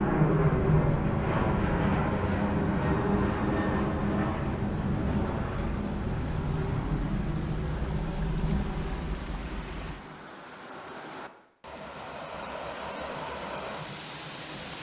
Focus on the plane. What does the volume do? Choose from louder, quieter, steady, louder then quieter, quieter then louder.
quieter.